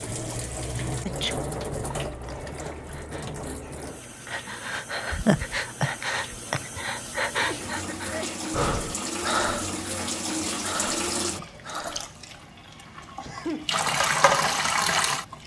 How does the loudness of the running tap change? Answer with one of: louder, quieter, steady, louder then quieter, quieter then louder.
quieter then louder.